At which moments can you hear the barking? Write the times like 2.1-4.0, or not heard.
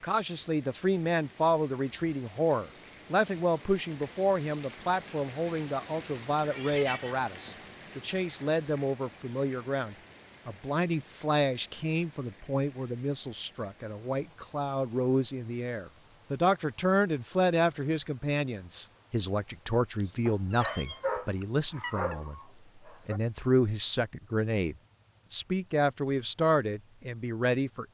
20.2-23.2.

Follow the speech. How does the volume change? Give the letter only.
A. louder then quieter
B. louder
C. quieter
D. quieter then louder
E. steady
E.